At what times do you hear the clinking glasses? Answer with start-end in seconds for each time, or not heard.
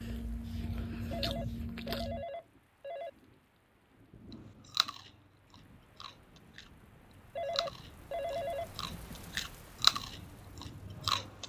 not heard.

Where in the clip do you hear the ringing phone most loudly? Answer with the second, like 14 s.
8 s.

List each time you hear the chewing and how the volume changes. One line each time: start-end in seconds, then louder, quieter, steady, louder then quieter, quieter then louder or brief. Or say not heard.
0.0-2.2 brief
4.3-11.4 quieter then louder.